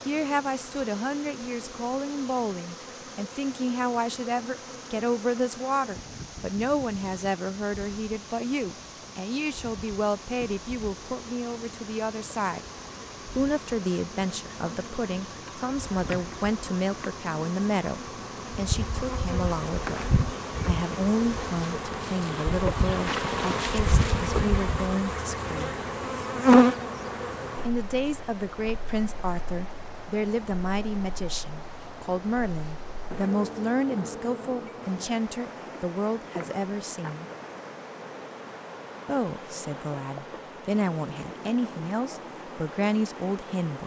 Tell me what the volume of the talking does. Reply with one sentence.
The loudness of the talking stays about the same.